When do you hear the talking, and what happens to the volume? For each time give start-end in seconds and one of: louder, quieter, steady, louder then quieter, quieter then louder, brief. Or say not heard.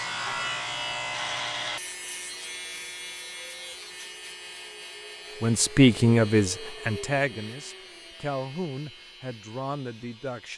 5.4-10.5 quieter.